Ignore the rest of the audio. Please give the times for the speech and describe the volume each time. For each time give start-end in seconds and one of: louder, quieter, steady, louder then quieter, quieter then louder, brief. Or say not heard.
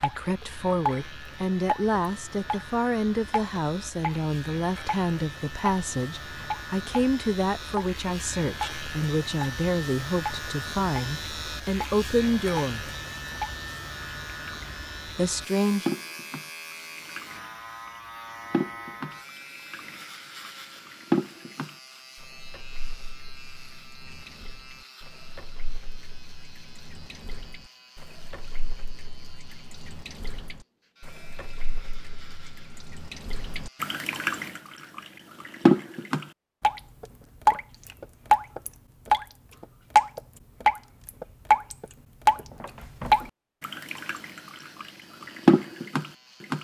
0.0-12.9 steady
15.2-15.8 brief.